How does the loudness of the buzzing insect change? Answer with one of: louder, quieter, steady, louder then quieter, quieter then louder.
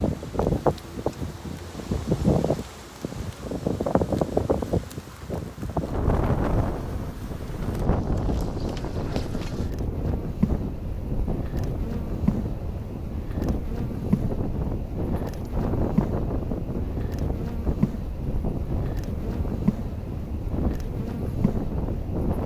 louder.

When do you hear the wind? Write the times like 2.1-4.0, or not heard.
0.0-22.4.